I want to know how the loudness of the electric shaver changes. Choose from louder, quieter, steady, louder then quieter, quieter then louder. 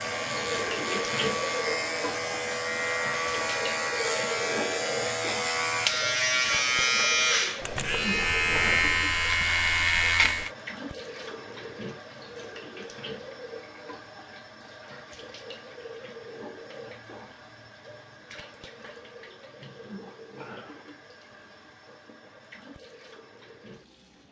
louder.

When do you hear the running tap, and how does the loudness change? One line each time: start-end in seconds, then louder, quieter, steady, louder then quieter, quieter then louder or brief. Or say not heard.
0.0-24.2 quieter.